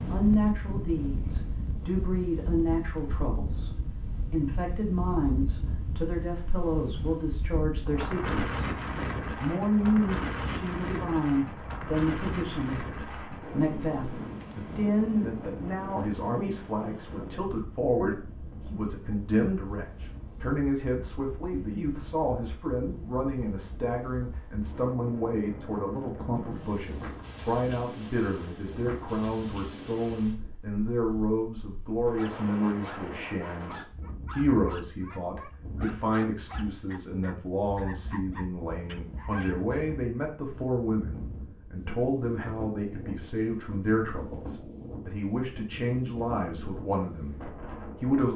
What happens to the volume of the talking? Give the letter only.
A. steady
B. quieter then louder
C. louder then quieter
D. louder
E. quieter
A.